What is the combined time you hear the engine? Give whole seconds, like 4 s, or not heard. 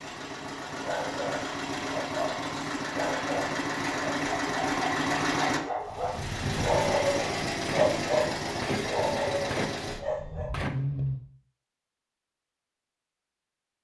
11 s.